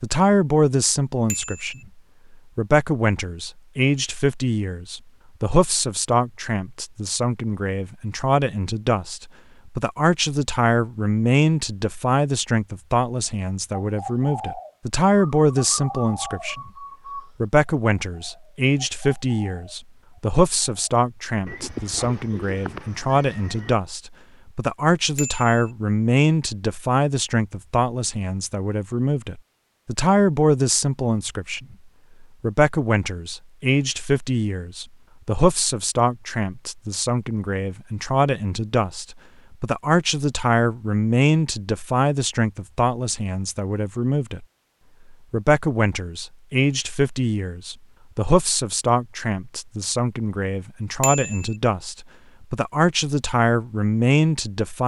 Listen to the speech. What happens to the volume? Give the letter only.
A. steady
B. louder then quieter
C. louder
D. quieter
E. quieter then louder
A.